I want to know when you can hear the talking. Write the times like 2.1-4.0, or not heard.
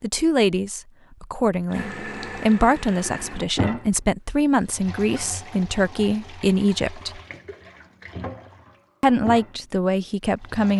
0.0-7.2, 9.0-10.7.